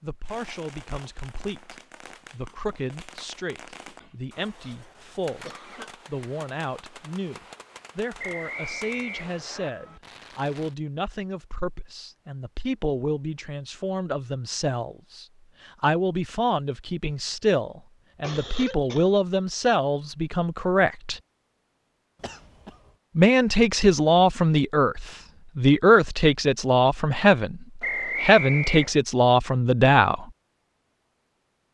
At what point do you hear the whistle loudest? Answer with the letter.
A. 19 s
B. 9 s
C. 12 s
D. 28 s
D.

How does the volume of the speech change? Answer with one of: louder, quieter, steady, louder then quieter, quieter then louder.
louder.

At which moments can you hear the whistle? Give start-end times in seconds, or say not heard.
8.2-9.7, 27.8-28.9.